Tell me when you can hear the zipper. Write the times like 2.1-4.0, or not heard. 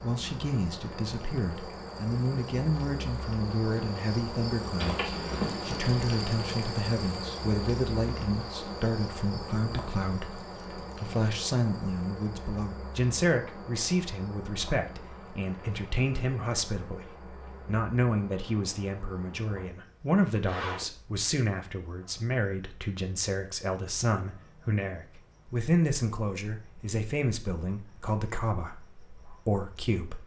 4.8-6.0, 20.1-20.9.